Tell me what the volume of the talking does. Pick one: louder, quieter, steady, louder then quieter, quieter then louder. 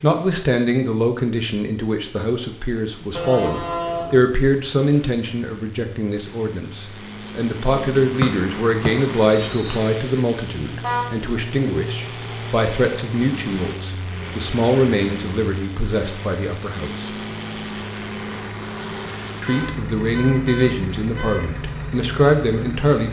steady.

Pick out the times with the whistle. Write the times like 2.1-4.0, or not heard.
8.2-9.8.